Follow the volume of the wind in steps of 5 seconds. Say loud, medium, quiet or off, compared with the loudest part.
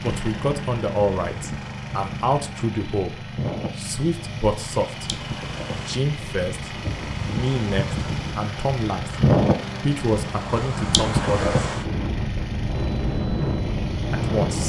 medium, loud, loud.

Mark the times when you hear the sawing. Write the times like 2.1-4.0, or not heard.
not heard.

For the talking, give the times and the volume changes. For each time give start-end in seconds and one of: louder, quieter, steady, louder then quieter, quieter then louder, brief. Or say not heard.
0.0-9.2 steady
9.8-11.6 brief
14.1-14.6 brief.